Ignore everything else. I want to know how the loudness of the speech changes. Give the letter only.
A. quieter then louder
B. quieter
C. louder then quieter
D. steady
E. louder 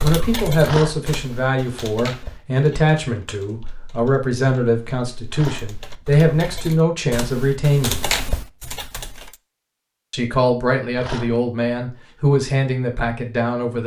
D.